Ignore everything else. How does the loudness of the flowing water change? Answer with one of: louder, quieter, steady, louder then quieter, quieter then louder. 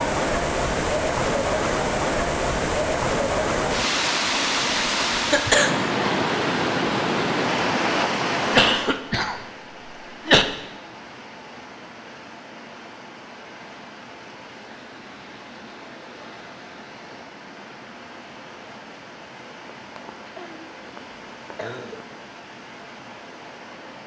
quieter.